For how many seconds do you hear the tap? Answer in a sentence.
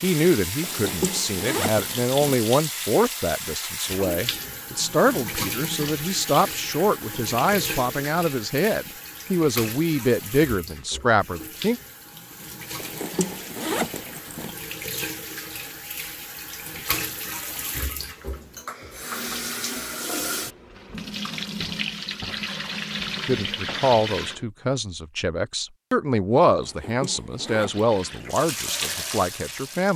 The tap can be heard for 27 seconds in total.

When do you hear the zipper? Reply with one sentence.
You can hear the zipper from 0.6 to 2.1 s, from 12.8 to 14.6 s and from 26.6 to 28.3 s.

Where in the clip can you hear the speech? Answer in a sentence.
You can hear the speech from 0.0 to 11.8 s and from 23.2 to 29.9 s.